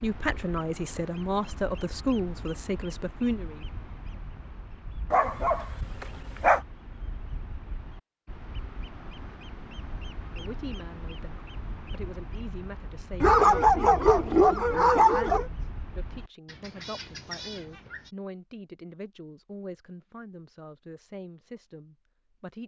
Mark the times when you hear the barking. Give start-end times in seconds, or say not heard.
5.1-6.6, 13.2-15.5.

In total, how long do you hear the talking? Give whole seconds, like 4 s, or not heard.
16 s.